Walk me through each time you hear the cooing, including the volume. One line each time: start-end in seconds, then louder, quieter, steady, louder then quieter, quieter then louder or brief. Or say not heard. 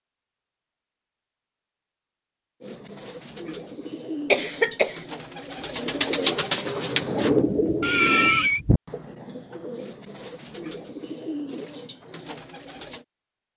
2.6-13.1 louder then quieter.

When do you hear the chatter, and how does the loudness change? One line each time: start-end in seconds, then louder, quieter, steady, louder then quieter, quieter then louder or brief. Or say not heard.
not heard.